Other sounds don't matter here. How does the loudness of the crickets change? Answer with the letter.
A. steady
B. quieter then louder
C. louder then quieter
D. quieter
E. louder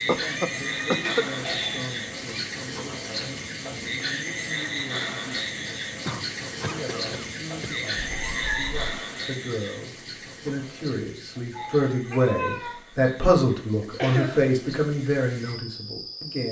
D.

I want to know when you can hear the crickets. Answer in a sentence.
You can hear the crickets from 0.0 to 16.4 s.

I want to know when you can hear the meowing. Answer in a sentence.
You can hear the meowing from 0.1 to 2.5 s, from 8.0 to 8.8 s and from 11.5 to 12.8 s.